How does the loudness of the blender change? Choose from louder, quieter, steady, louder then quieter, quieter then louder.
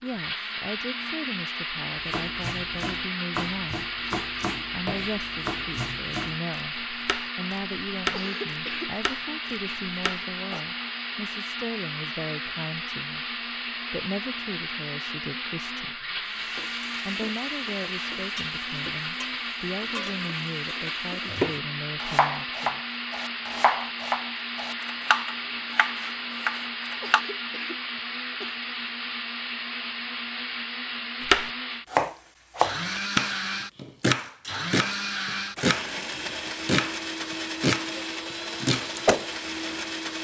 steady.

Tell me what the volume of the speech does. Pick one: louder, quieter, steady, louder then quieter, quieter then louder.
steady.